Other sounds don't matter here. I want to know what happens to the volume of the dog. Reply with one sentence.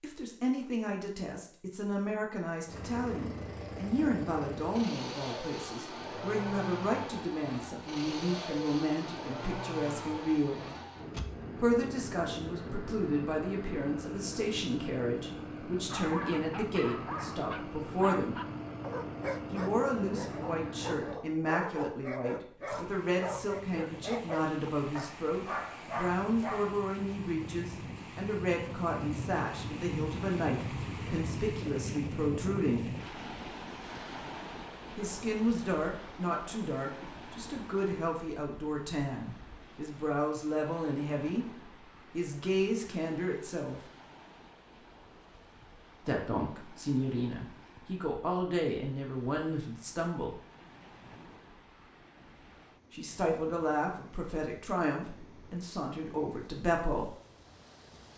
The loudness of the dog stays about the same.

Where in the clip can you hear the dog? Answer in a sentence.
The dog can be heard from 15.9 to 26.8 s.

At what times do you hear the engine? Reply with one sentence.
The engine can be heard from 2.6 to 21.2 s.